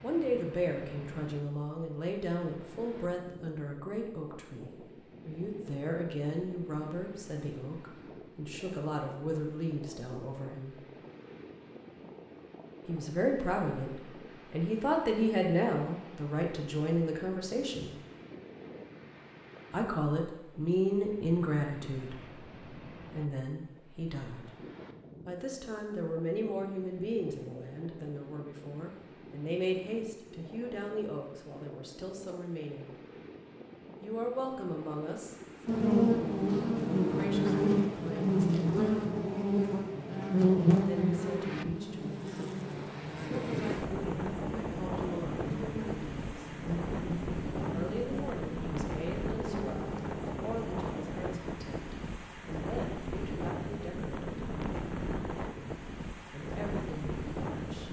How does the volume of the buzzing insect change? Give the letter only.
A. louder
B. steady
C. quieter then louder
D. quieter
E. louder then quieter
D.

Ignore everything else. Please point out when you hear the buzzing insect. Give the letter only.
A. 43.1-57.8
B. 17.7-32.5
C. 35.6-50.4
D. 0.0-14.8
C.